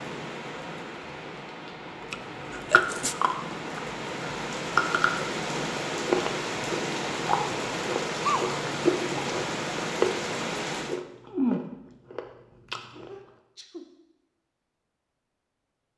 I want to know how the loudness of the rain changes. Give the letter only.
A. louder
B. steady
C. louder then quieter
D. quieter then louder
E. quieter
A.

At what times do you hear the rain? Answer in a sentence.
The rain can be heard from 0.0 to 11.1 s.